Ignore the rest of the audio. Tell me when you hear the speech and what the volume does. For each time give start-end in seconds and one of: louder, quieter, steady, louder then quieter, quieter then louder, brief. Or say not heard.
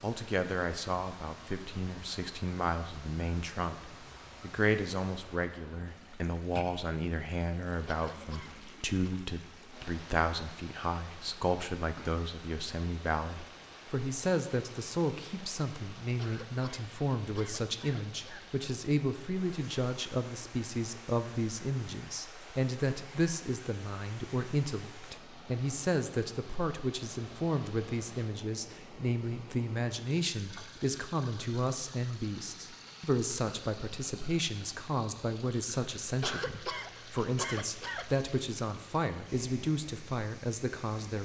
0.0-41.2 steady.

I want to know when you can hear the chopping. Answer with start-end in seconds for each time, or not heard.
not heard.